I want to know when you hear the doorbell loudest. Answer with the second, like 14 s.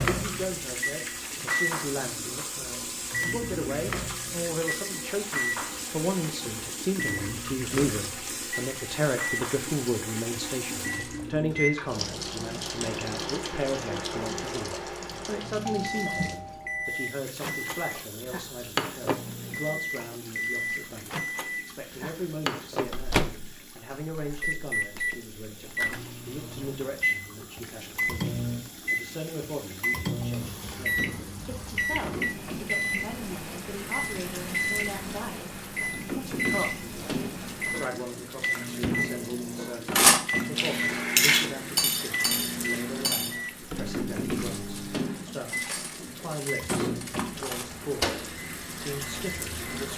16 s.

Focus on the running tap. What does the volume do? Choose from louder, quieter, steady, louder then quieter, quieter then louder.
quieter then louder.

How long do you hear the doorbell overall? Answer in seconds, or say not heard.
2 s.